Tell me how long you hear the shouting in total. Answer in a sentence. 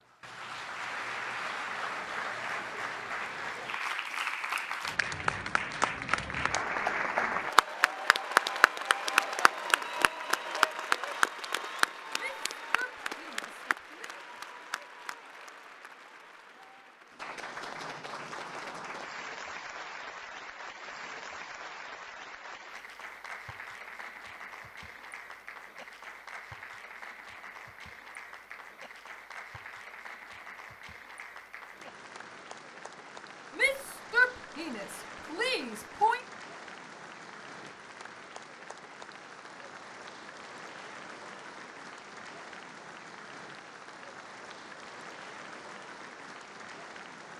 The shouting can be heard for 5 seconds in total.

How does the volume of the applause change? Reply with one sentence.
The volume of the applause goes down.